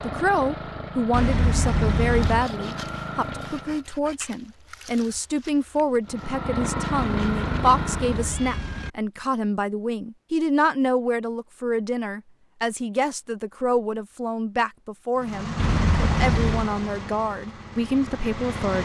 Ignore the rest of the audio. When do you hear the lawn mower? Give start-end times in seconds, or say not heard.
0.0-3.9, 6.0-8.5, 15.2-18.7.